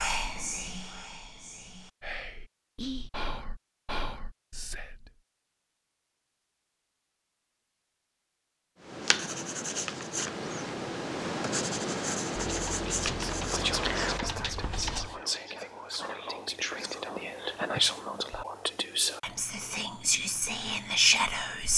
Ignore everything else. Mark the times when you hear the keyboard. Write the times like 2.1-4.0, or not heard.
12.3-15.1.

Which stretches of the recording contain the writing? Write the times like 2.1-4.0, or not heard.
8.8-15.2.